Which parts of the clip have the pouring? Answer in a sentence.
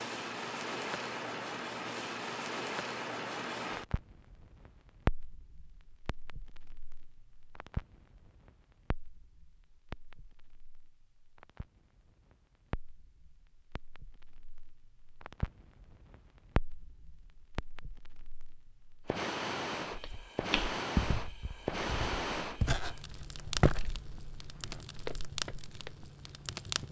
You can't hear the pouring here.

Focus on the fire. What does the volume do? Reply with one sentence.
The loudness of the fire goes down, then up.